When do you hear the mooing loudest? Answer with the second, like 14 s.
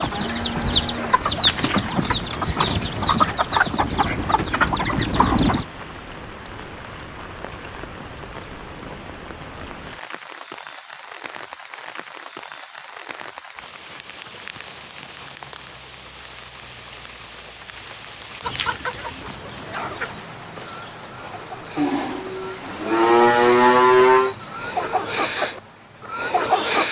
24 s.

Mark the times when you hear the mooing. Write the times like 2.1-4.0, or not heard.
0.1-1.9, 21.8-24.4.